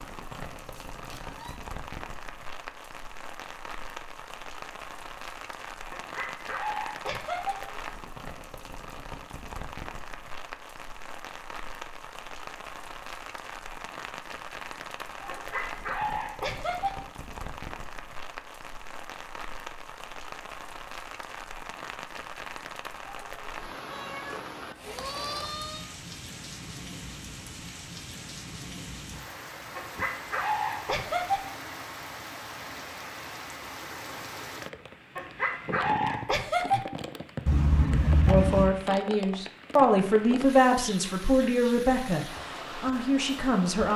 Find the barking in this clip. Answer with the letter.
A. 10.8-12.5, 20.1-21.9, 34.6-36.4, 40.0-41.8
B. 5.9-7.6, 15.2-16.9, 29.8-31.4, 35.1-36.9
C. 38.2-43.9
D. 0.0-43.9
B.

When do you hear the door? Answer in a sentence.
The door can't be heard in this clip.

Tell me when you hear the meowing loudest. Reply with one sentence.
The volume of the meowing peaks at 38 seconds.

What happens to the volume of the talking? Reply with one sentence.
The loudness of the talking goes up, then down.